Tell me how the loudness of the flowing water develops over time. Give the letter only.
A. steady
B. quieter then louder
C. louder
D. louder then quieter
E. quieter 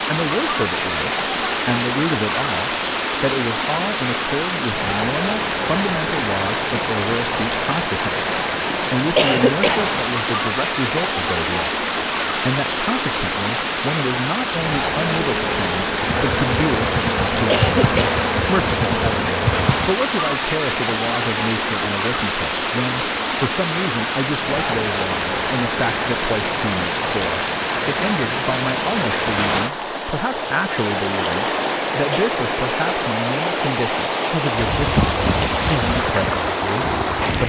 A.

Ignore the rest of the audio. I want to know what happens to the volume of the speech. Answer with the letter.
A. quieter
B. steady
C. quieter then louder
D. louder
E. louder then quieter
B.